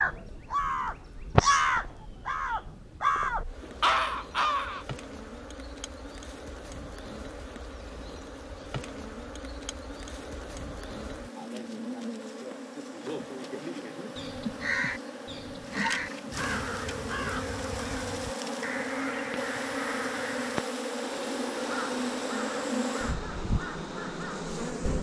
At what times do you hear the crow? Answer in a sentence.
The crow can be heard from 0.0 to 4.8 s and from 14.2 to 24.8 s.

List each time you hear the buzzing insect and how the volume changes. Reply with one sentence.
You can hear the buzzing insect from 0.0 to 24.9 s, getting louder.